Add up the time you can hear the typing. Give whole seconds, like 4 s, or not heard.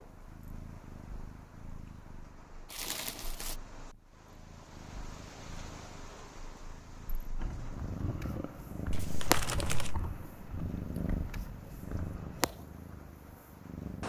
5 s.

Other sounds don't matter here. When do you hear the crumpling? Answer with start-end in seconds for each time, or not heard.
2.7-3.5, 8.9-10.0.